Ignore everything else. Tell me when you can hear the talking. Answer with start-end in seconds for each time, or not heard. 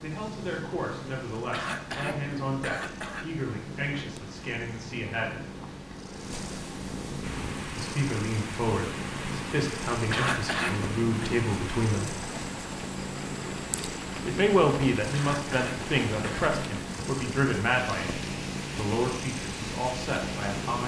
0.0-5.5, 7.8-12.2, 14.2-20.8.